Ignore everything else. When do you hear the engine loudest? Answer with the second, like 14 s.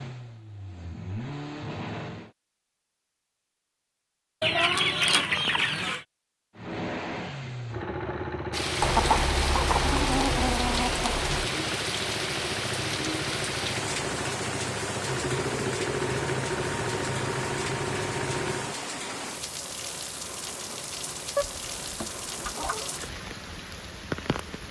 16 s.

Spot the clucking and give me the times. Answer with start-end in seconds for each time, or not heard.
4.4-6.0, 8.8-11.5, 21.4-22.9.